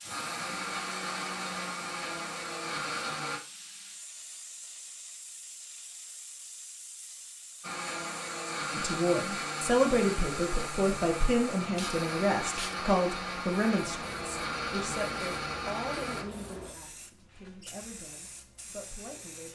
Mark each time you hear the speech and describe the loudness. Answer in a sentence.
The speech can be heard from 8.7 to 19.5 s, getting quieter.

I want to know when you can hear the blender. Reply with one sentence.
The blender can be heard from 0.0 to 3.4 s and from 7.6 to 16.2 s.